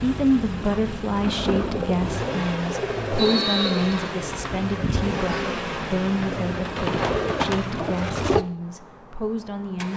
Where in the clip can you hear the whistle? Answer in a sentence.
You can hear the whistle from 3.1 to 4.1 s.